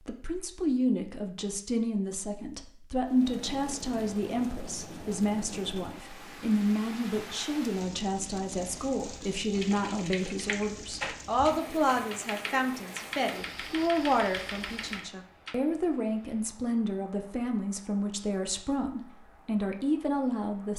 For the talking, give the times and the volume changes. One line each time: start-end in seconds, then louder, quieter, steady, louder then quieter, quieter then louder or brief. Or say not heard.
0.1-20.7 steady.